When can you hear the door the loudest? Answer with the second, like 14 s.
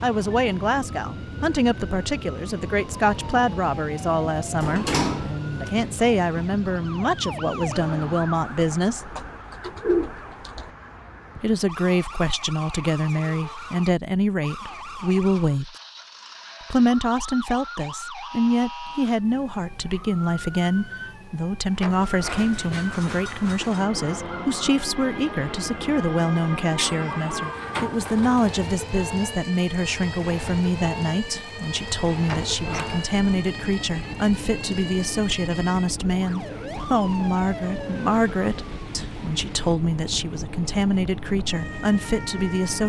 5 s.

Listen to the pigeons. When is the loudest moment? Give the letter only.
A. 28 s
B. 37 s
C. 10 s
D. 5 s
C.